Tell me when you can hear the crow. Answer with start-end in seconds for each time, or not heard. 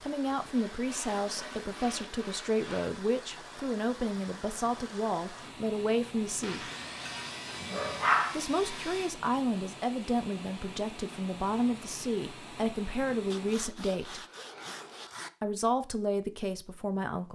not heard.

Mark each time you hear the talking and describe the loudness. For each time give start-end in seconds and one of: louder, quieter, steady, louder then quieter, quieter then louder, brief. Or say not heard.
0.0-6.6 steady
8.3-14.2 steady
15.4-17.3 brief.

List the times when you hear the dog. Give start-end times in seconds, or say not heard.
6.6-8.4.